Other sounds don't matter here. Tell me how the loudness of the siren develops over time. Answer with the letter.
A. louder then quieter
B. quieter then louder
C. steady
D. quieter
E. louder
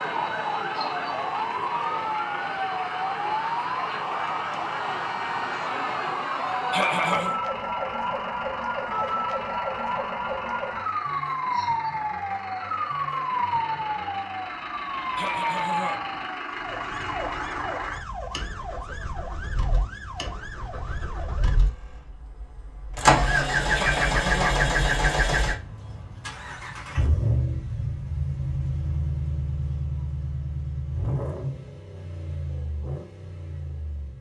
D.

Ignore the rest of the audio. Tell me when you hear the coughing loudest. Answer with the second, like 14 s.
7 s.